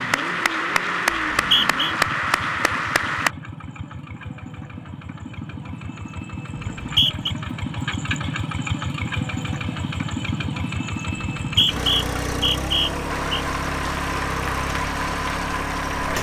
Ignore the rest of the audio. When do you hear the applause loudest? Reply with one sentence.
The loudest moment of the applause is at 2 seconds.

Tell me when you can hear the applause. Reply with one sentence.
The applause can be heard from 0.0 to 3.3 s and from 13.1 to 16.1 s.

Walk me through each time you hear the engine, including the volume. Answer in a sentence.
You can hear the engine from 0.0 to 16.1 s, getting louder.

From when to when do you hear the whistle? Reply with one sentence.
The whistle can be heard from 1.1 to 1.9 s, from 6.7 to 7.3 s and from 11.4 to 13.4 s.